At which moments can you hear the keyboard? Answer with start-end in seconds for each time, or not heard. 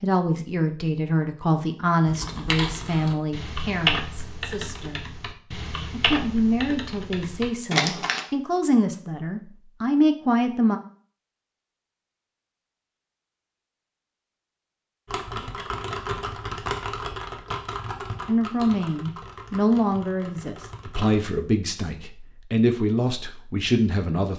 2.0-8.2, 15.1-21.2.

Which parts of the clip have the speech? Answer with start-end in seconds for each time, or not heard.
0.0-5.0, 5.9-10.8, 18.2-24.3.